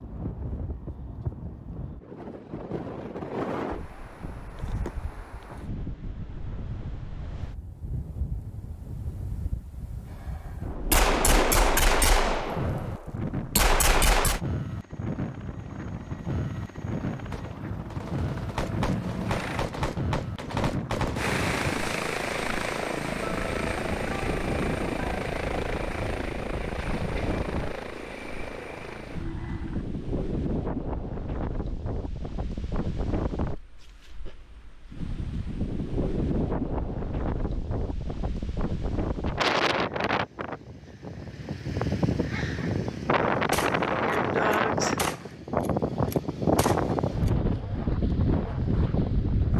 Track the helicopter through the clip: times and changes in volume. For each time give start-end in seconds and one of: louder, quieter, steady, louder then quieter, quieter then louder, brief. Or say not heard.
14.5-19.6 louder
21.1-29.9 quieter.